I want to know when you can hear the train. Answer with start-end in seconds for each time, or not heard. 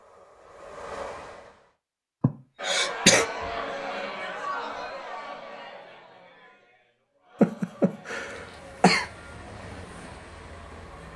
0.0-1.8, 8.2-11.1.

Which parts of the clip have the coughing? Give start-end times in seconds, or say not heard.
2.2-3.2, 7.4-9.1.